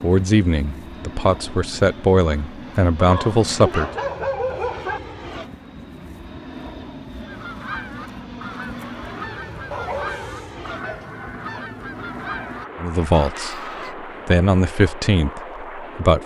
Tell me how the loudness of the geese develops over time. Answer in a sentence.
The loudness of the geese stays about the same.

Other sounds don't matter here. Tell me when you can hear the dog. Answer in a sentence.
The dog can be heard from 3.0 to 5.0 s and from 9.7 to 11.7 s.